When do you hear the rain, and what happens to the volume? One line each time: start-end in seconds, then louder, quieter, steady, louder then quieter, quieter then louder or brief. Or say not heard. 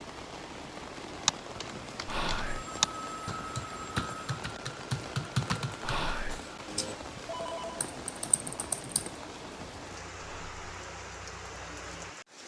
0.0-12.4 steady.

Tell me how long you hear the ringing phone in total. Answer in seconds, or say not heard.
3 s.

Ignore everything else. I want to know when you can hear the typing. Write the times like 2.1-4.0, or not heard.
1.2-9.1.